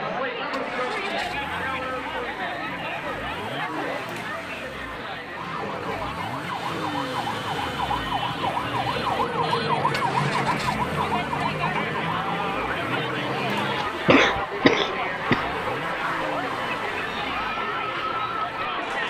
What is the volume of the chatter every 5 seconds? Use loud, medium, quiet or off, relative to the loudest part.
loud, medium, loud, loud.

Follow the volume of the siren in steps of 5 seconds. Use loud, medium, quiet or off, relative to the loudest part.
medium, loud, loud, medium.